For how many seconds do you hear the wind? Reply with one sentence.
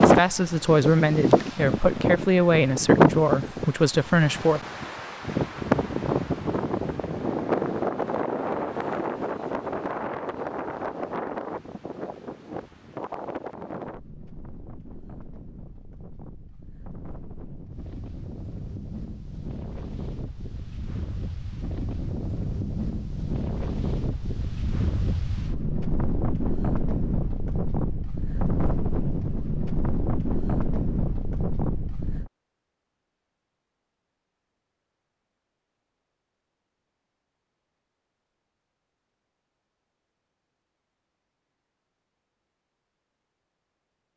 The wind can be heard for 32 seconds in total.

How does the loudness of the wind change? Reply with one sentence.
The loudness of the wind goes down, then up.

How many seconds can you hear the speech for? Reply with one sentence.
The speech can be heard for 5 seconds in total.